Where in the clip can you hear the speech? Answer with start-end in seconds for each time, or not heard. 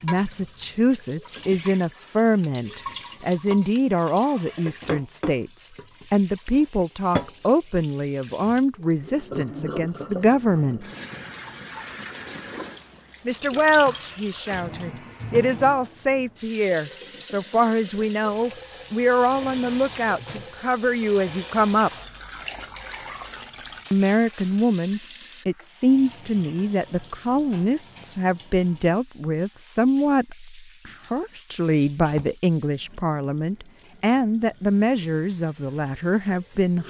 0.0-10.8, 13.2-21.9, 23.9-36.8.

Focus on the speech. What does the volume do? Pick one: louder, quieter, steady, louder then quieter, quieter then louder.
steady.